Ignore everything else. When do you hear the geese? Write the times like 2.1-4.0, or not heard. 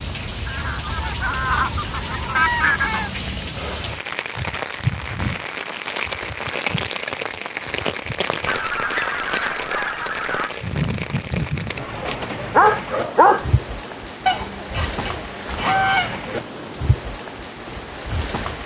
0.5-3.1, 8.4-10.5, 14.2-16.2.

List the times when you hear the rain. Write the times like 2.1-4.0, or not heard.
0.0-18.6.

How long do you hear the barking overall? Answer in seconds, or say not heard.
2 s.